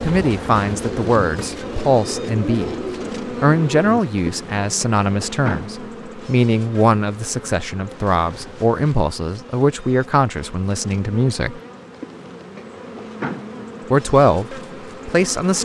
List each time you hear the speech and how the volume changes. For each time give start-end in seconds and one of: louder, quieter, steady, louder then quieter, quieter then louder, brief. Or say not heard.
0.0-2.7 brief
3.3-11.6 steady
13.9-15.6 brief.